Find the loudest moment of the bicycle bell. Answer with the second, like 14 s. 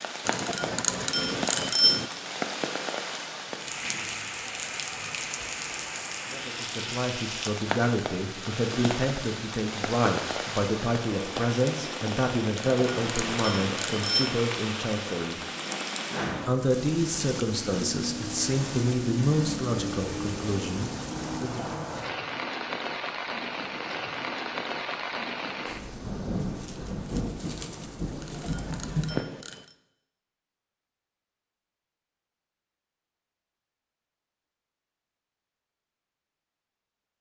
2 s.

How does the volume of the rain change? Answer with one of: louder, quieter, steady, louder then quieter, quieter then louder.
steady.